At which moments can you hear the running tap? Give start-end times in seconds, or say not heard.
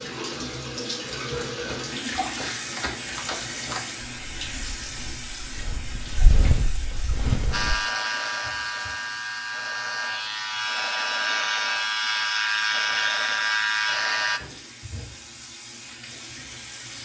0.0-17.0.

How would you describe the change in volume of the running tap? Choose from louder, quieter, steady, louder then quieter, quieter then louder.
quieter then louder.